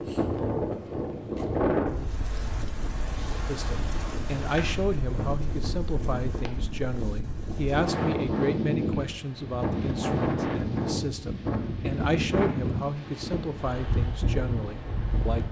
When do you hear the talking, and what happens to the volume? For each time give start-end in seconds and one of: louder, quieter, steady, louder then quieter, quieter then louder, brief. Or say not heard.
3.5-15.4 steady.